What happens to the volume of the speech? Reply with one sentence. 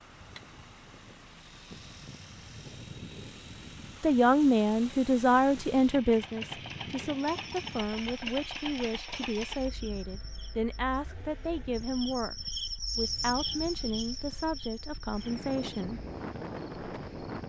The volume of the speech goes down.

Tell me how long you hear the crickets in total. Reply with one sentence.
The crickets can be heard for 10 seconds in total.